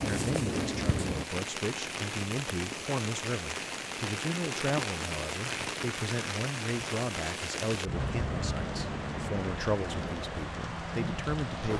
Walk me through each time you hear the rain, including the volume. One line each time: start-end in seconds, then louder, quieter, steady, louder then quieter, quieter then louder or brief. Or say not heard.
0.0-11.7 steady.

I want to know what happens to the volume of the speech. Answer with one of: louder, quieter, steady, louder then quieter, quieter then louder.
steady.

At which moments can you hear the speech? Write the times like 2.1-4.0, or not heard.
0.0-11.7.